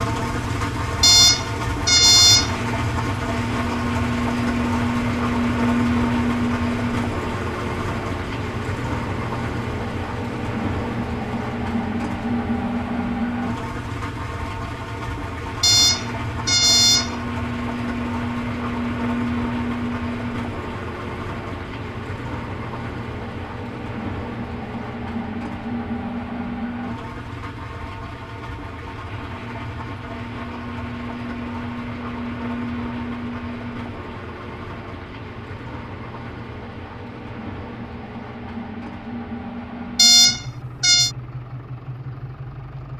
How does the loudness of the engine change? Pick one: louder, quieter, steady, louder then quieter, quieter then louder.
quieter.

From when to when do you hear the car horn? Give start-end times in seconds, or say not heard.
1.0-2.5, 15.6-17.1, 40.0-41.1.